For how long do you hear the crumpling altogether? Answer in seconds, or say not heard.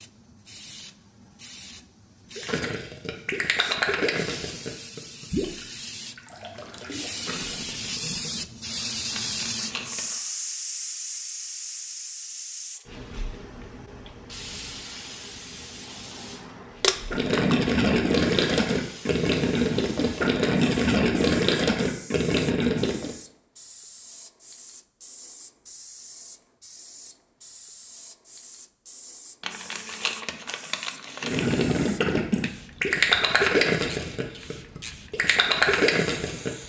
4 s.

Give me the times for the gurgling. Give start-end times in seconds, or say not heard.
2.4-8.4, 17.1-23.1, 31.2-36.5.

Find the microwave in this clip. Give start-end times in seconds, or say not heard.
not heard.